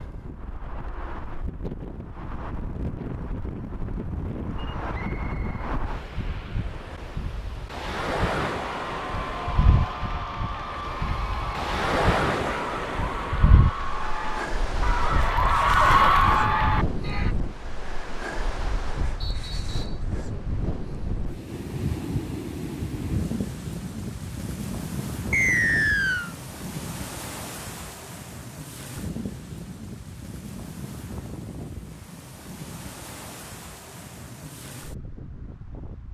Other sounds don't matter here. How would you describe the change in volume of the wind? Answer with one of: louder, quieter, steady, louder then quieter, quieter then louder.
louder then quieter.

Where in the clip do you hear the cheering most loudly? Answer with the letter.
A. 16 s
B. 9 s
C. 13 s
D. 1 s
A.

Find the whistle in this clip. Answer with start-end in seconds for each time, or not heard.
4.9-5.6, 19.2-20.0, 25.3-26.4.